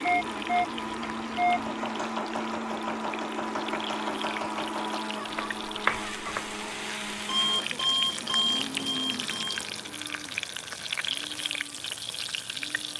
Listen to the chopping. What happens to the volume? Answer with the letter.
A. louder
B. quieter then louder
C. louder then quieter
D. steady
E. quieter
A.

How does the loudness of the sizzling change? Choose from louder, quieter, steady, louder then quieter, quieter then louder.
louder.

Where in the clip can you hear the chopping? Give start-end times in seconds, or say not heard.
1.4-6.6.